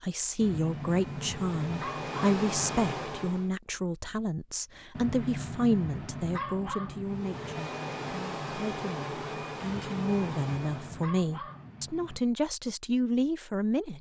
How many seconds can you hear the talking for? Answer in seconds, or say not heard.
14 s.